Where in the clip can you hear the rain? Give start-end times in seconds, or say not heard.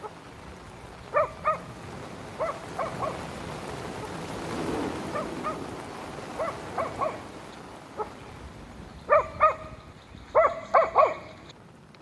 0.0-11.9.